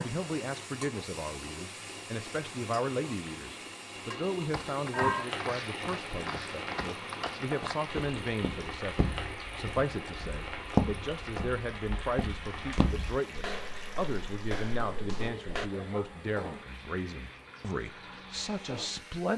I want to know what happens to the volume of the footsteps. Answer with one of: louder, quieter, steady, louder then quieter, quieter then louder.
louder then quieter.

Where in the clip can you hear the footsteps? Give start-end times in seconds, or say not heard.
4.5-15.7.